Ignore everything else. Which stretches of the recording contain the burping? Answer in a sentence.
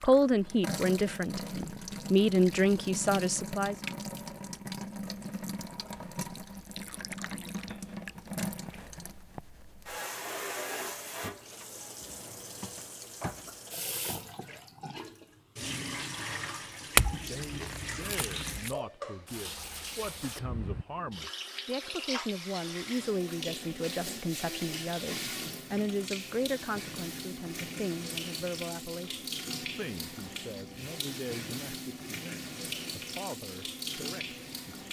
The burping can't be heard in this clip.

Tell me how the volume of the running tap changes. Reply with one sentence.
The loudness of the running tap stays about the same.